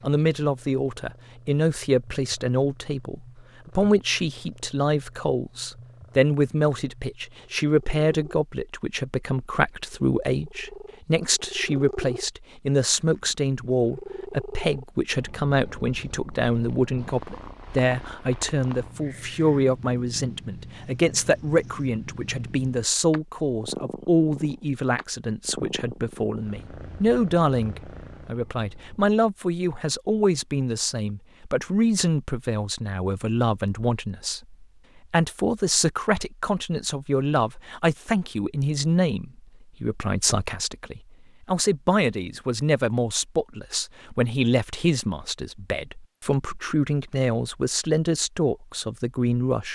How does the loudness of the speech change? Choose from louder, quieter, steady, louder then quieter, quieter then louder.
steady.